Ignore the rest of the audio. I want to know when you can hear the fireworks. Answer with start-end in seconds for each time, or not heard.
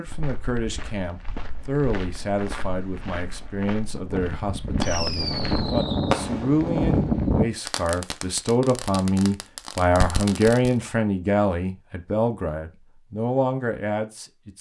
4.0-10.8.